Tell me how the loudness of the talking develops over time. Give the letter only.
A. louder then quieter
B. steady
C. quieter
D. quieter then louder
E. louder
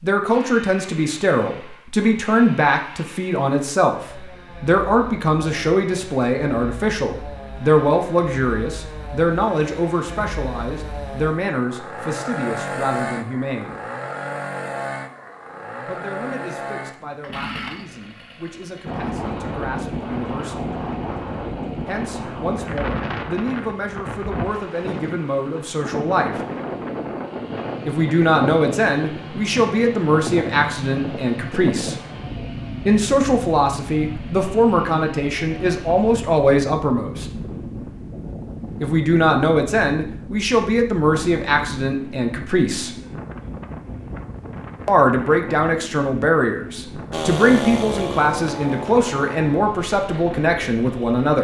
D.